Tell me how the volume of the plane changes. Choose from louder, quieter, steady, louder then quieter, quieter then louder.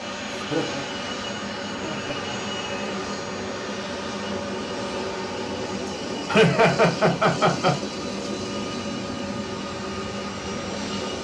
steady.